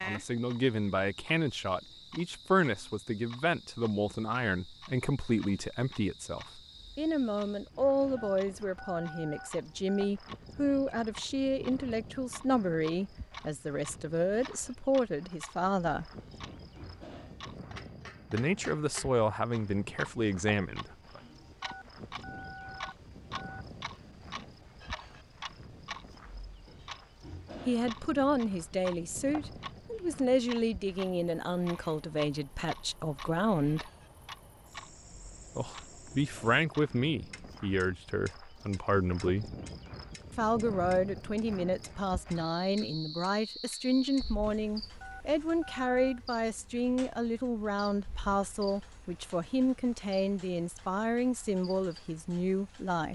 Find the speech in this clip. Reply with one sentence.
You can hear the speech from 0.0 to 16.1 s, from 18.3 to 21.2 s, from 27.6 to 33.9 s, from 35.5 to 39.5 s and from 40.4 to 53.1 s.